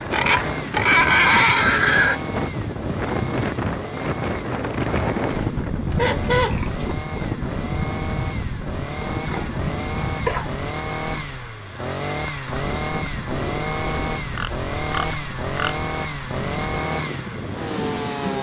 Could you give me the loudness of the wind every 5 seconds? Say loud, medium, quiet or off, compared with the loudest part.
loud, loud, medium, medium.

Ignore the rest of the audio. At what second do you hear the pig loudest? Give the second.
1 s.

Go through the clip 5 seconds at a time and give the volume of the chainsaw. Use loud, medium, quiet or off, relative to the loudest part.
medium, medium, loud, loud.